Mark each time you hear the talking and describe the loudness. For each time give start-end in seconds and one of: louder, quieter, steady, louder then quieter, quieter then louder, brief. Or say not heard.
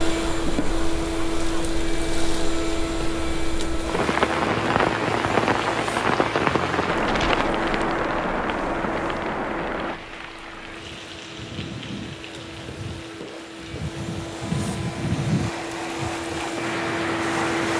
not heard.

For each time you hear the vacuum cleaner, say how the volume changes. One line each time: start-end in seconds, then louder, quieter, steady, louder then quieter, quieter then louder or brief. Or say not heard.
0.0-17.7 quieter then louder.